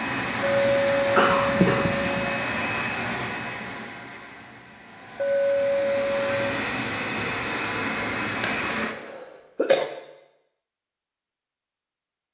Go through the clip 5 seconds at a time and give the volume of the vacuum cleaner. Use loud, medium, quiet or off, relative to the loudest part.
loud, loud, off.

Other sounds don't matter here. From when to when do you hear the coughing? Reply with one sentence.
The coughing can be heard from 1.1 to 2.2 s and from 8.4 to 9.8 s.